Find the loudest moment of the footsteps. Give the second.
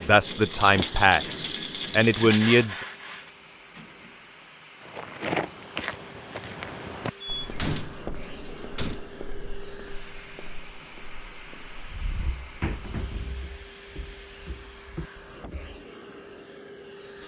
5 s.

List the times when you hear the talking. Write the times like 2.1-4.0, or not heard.
0.0-2.8.